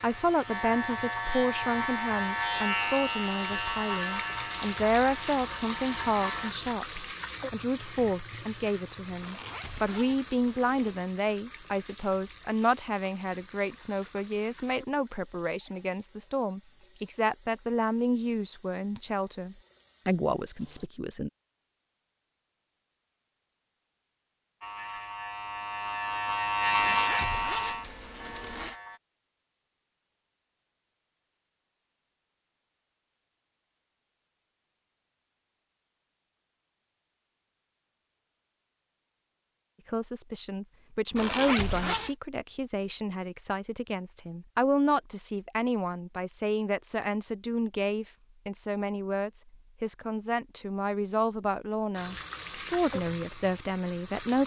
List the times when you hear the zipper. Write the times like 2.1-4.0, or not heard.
9.2-11.0, 26.8-28.8, 41.1-42.1.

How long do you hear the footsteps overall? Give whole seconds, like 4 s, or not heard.
not heard.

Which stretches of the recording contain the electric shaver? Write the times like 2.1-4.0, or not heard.
0.0-6.5, 24.6-29.0.